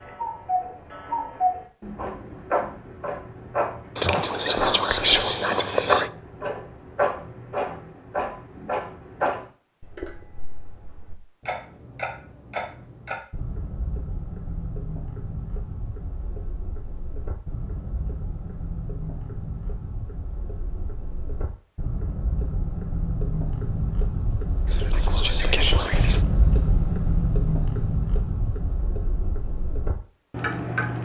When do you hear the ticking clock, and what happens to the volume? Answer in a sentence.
The ticking clock can be heard from 0.0 to 30.9 s, getting quieter then louder.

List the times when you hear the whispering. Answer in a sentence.
The whispering can be heard from 4.0 to 6.1 s and from 24.6 to 26.2 s.